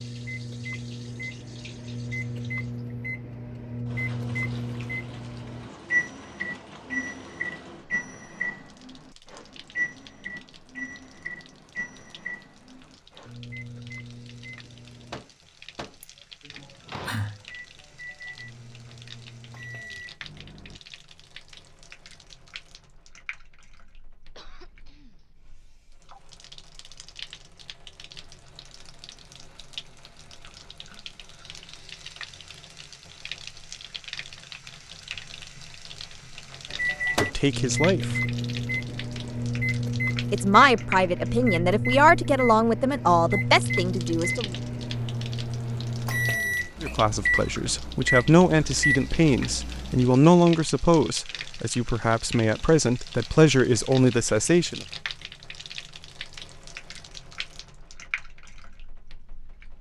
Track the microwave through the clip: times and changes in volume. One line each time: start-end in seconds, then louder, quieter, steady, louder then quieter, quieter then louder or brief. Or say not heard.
0.0-20.8 quieter
36.7-50.1 steady.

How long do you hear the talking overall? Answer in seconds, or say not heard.
13 s.